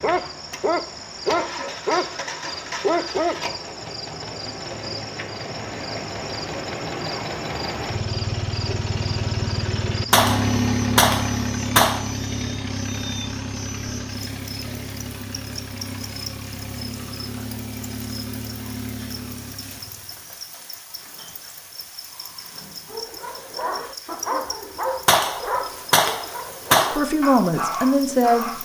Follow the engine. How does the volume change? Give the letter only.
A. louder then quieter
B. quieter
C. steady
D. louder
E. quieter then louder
A.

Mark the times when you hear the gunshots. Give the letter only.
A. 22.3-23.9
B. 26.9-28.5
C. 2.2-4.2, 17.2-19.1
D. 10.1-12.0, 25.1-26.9
D.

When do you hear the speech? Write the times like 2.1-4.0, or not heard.
26.9-28.5.